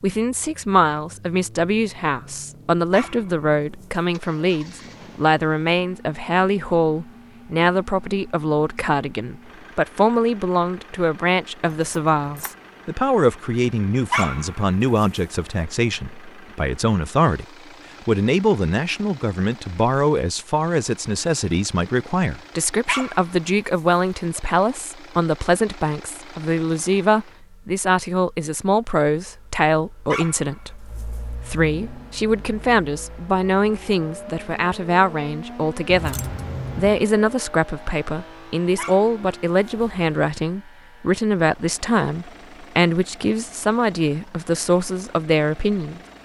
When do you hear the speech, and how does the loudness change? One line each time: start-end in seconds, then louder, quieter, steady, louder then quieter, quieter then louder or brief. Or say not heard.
0.0-17.4 steady
18.1-46.0 steady.